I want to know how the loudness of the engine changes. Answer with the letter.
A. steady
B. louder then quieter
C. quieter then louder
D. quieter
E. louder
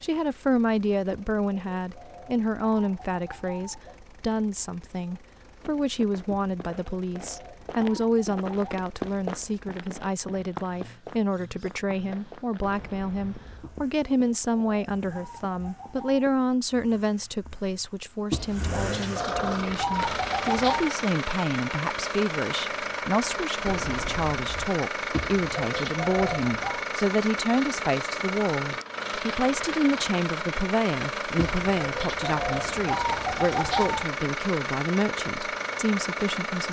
E.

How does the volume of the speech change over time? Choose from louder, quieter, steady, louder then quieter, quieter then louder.
steady.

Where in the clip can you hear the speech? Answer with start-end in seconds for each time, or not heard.
0.0-36.6.